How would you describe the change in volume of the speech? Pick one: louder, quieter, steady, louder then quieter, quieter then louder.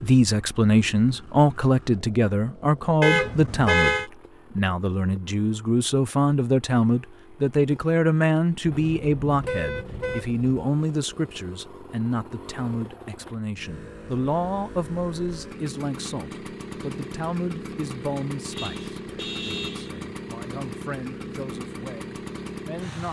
quieter.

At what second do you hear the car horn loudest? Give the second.
4 s.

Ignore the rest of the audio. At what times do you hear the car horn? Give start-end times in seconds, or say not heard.
3.0-4.1, 8.7-10.4, 18.5-20.0.